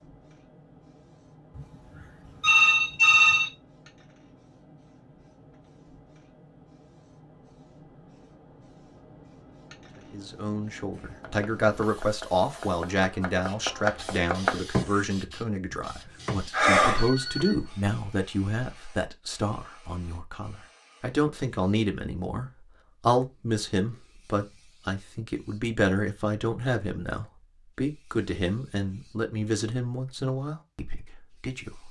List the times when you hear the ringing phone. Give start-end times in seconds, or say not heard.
1.6-3.5, 16.5-17.6.